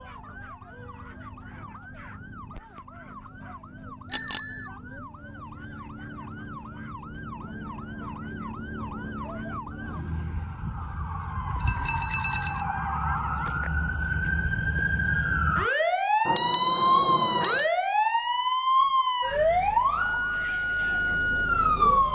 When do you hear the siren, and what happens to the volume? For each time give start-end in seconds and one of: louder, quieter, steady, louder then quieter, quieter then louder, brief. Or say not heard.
0.0-22.0 louder.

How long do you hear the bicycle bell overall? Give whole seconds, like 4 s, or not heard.
3 s.